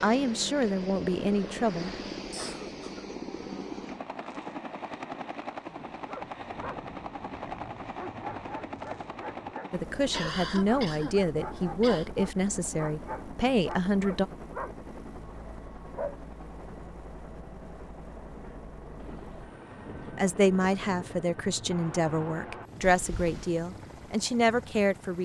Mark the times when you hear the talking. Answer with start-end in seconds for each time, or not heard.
0.0-1.9, 9.7-14.2, 20.1-25.2.